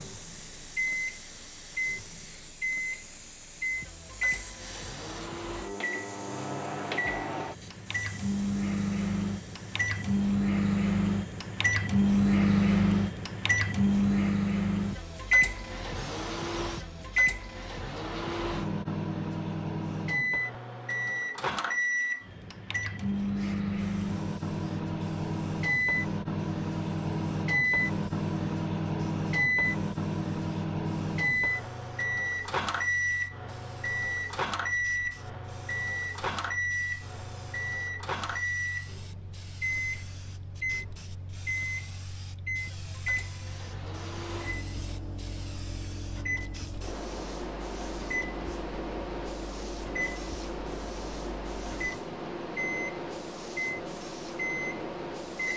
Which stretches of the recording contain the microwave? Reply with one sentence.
The microwave can be heard from 0.0 to 55.5 s.